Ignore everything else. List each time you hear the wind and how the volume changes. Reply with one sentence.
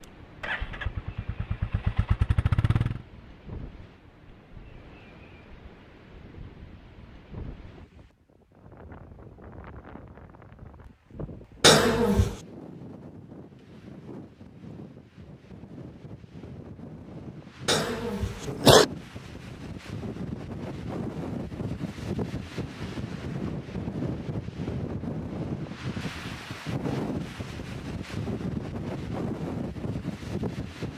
You can hear the wind from 0.0 to 30.9 s, getting louder.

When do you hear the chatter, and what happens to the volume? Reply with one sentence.
You can't hear the chatter here.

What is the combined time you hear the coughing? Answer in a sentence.
The coughing can be heard for 2 seconds in total.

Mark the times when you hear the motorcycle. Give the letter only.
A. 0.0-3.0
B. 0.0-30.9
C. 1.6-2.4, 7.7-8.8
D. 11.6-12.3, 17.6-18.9
A.